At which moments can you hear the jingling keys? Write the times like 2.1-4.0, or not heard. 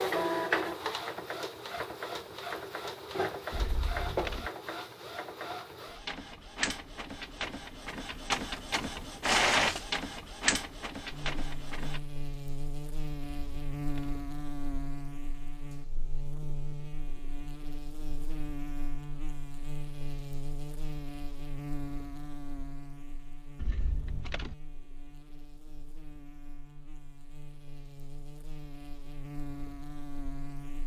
3.5-4.5, 13.2-14.2, 23.6-24.6.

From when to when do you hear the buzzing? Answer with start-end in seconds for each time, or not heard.
11.1-30.8.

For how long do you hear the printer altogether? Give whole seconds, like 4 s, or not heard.
12 s.